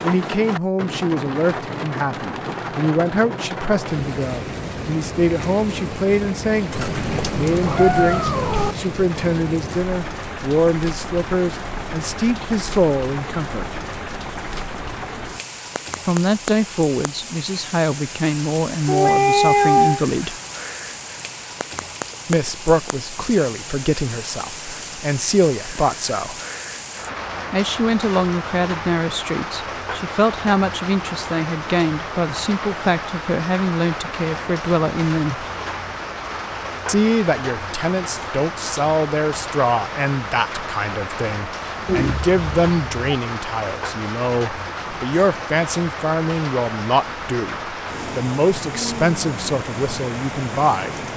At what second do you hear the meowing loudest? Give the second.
20 s.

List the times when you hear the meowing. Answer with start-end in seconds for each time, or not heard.
6.7-8.8, 18.9-20.0, 41.9-43.1.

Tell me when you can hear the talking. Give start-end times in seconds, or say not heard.
0.0-13.8, 16.1-20.4, 22.2-26.4, 27.5-35.4, 36.9-50.9.